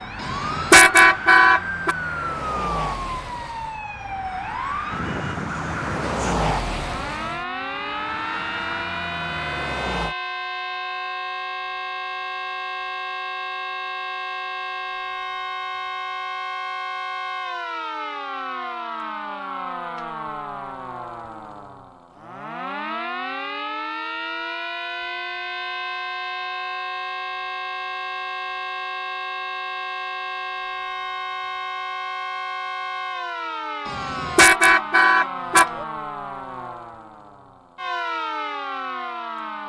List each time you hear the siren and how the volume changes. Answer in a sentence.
The siren can be heard from 0.0 to 39.6 s, at a steady volume.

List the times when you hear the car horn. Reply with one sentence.
The car horn can be heard from 0.2 to 1.9 s and from 33.9 to 35.9 s.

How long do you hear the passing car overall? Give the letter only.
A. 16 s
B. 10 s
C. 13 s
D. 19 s
B.